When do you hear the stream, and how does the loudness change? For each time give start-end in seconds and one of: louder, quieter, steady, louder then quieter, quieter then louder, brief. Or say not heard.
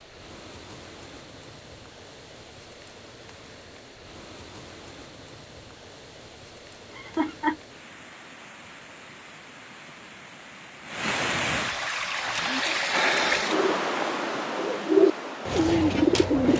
0.0-16.5 louder.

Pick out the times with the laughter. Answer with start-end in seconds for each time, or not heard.
6.9-7.6.